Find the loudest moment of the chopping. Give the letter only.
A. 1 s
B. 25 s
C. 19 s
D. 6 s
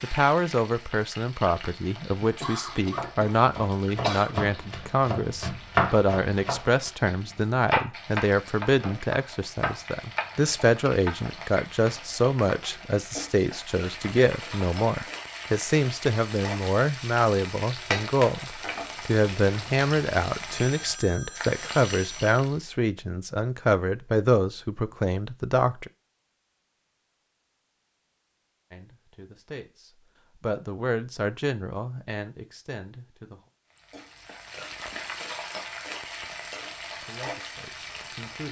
D.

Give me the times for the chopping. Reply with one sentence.
The chopping can be heard from 2.9 to 11.2 s.